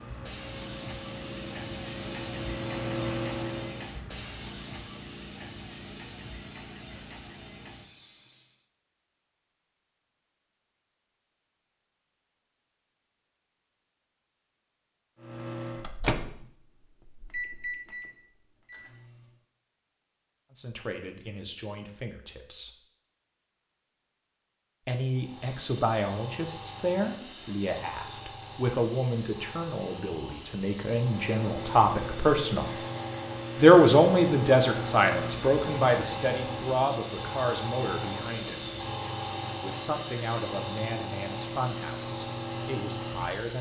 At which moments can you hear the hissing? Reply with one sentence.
You can hear the hissing from 0.0 to 8.7 s and from 25.1 to 43.5 s.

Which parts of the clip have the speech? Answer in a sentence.
The speech can be heard from 20.6 to 22.7 s, from 24.9 to 32.8 s, from 33.5 to 38.6 s and from 39.6 to 43.5 s.